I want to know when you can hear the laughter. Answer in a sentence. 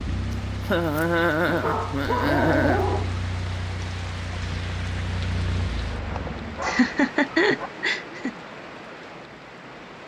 The laughter can be heard from 0.6 to 2.9 s and from 6.2 to 8.3 s.